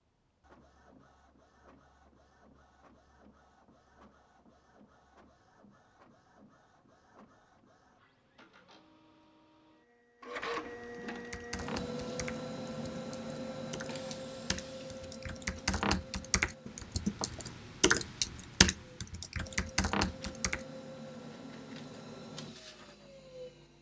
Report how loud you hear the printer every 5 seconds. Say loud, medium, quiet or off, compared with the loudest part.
quiet, quiet, loud, medium, medium.